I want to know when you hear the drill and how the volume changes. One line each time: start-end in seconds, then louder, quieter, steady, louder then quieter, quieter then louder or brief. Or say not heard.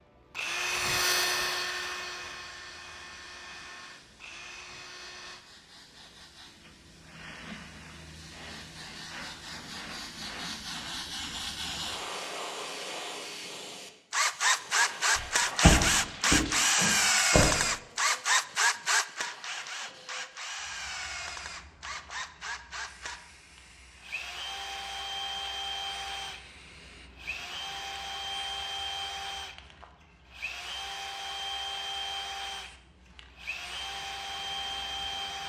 0.0-5.5 quieter
14.1-35.4 quieter.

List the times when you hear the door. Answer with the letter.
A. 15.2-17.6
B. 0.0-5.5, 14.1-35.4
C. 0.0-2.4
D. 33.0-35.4
A.